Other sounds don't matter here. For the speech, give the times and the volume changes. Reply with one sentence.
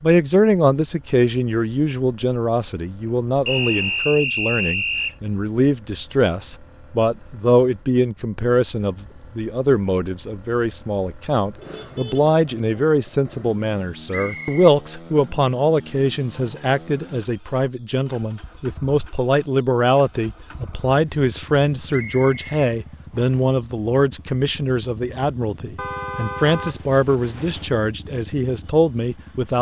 The speech can be heard from 0.0 to 29.5 s, at a steady volume.